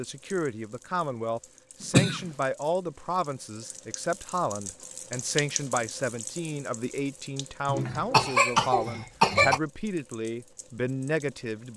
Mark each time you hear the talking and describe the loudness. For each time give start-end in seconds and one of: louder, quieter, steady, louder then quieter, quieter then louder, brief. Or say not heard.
0.0-11.7 steady.